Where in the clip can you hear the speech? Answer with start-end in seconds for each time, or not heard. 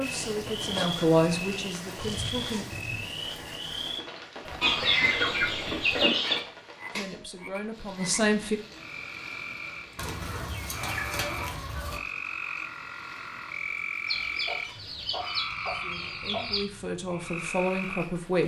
0.0-2.6, 6.9-8.6, 15.7-18.4.